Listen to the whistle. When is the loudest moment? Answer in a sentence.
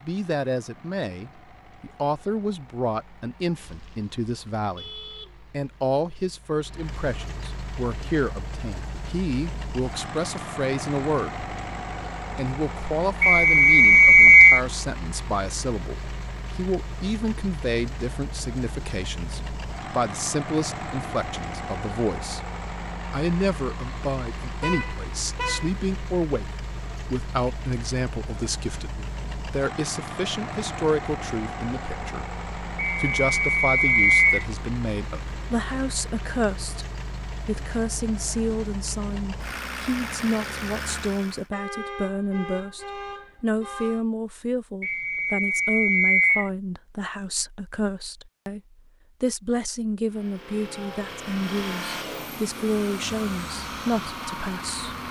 The loudest moment of the whistle is at 14 seconds.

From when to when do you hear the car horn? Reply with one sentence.
You can hear the car horn from 3.6 to 5.4 s, from 24.6 to 25.8 s and from 41.5 to 44.0 s.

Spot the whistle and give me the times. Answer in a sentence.
The whistle can be heard from 13.2 to 14.6 s, from 32.8 to 34.5 s and from 44.8 to 46.5 s.